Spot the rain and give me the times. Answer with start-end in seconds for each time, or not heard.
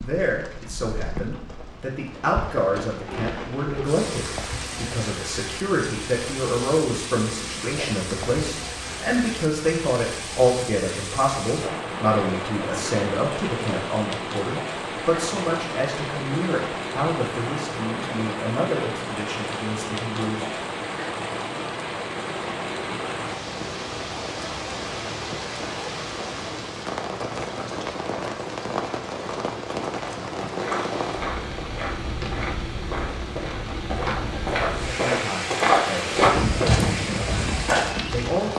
0.0-38.5.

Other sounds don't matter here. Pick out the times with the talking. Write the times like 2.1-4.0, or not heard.
0.0-20.5, 34.7-38.5.